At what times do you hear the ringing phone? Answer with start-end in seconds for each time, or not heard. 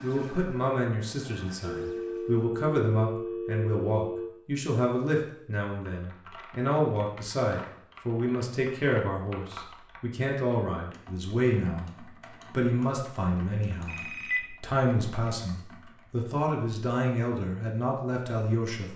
1.6-4.3, 13.8-14.4.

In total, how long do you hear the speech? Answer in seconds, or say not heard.
18 s.